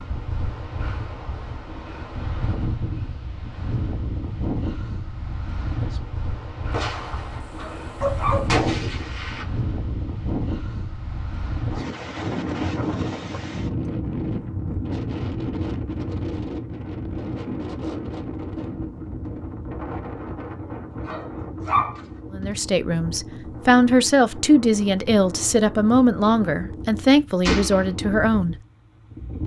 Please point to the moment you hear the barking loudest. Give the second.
22 s.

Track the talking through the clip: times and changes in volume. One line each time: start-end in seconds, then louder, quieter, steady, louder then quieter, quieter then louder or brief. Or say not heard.
22.3-28.6 steady.